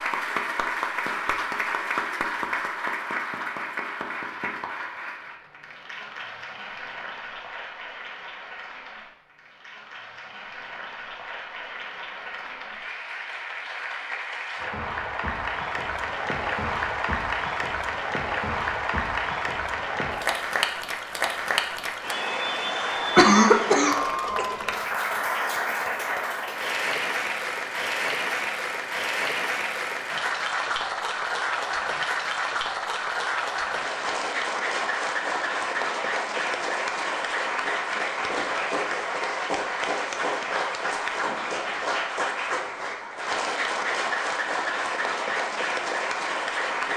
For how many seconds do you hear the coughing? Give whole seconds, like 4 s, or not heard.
2 s.